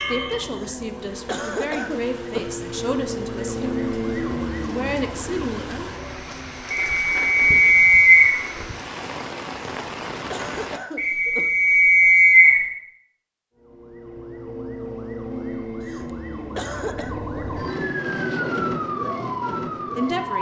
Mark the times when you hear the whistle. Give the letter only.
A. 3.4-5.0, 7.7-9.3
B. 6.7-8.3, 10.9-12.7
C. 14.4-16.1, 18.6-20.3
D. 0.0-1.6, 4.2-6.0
B.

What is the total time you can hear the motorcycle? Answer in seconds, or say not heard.
not heard.